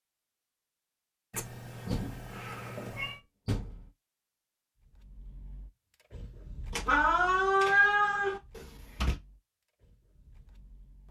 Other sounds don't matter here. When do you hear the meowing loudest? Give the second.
8 s.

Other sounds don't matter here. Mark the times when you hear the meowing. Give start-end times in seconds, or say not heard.
1.3-3.2, 6.7-8.4.